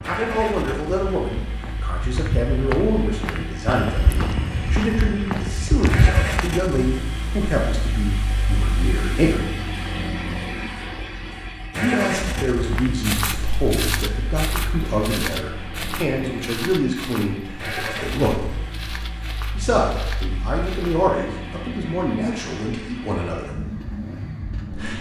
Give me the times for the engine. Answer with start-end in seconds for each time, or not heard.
0.0-24.9.